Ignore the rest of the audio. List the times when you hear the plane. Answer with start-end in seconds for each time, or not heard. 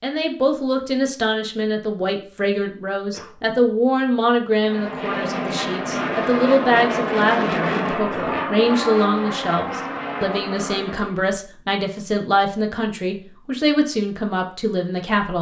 4.5-11.2.